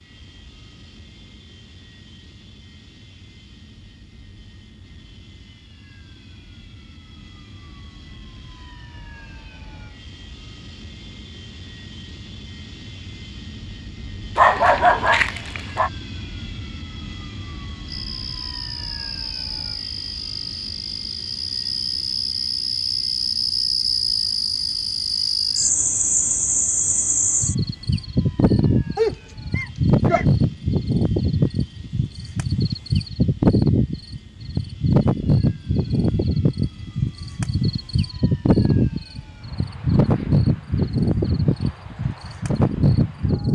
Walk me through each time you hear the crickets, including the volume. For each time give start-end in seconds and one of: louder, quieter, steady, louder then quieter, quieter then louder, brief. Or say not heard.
17.9-43.5 louder.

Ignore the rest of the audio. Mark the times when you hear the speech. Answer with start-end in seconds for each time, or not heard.
not heard.